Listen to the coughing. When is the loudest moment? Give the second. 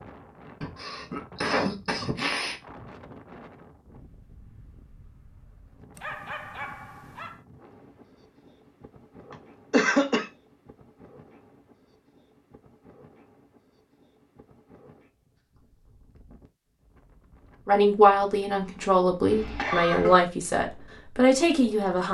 10 s.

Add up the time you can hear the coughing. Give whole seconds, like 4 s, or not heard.
4 s.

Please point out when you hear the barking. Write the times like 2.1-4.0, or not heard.
6.0-7.4.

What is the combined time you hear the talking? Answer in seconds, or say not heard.
4 s.